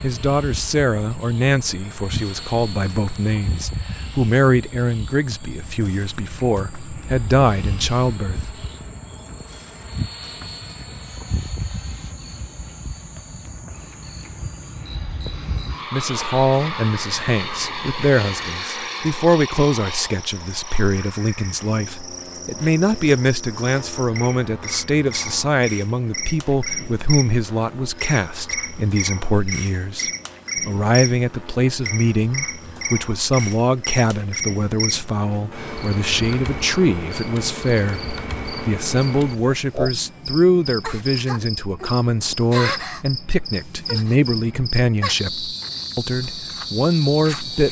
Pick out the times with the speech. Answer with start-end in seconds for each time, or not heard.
0.0-8.5, 15.9-47.6.